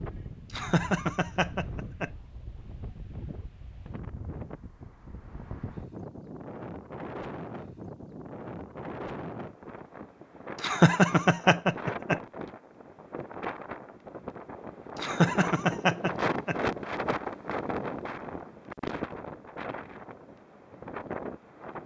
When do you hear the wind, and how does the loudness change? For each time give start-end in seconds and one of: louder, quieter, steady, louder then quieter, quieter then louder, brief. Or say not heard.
0.0-21.8 louder.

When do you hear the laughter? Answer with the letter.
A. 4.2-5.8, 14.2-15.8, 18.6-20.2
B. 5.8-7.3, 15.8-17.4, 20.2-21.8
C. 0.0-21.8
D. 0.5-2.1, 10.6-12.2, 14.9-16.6
D.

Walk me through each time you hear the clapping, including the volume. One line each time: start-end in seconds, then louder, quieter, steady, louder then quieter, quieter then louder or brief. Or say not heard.
not heard.